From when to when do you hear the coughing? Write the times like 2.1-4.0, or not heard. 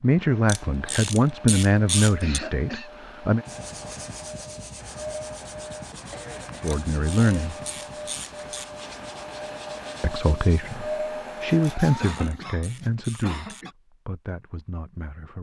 2.2-2.9, 6.1-7.5, 12.0-13.7.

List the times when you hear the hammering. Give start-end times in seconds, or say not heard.
not heard.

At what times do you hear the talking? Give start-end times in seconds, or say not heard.
0.0-3.5, 6.6-7.5, 10.0-15.3.